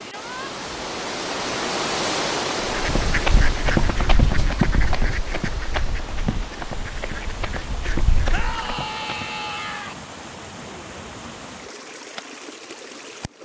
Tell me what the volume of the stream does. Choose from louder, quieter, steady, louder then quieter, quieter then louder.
quieter.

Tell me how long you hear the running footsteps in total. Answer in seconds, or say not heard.
6 s.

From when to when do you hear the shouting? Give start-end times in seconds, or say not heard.
0.0-0.6, 8.3-9.9.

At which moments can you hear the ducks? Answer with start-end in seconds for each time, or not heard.
2.6-8.5.